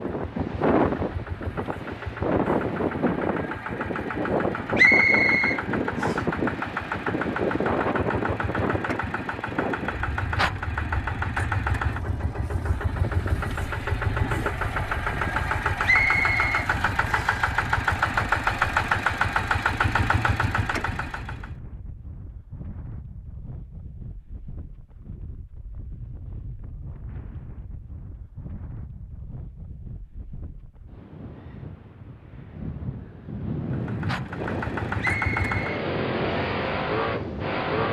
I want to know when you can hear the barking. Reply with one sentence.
The barking can't be heard in this clip.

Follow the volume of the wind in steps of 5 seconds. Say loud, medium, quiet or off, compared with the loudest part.
loud, loud, quiet, quiet, quiet, quiet, medium, medium.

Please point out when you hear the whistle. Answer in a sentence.
The whistle can be heard from 4.8 to 6.2 s, from 15.8 to 17.4 s and from 35.0 to 35.9 s.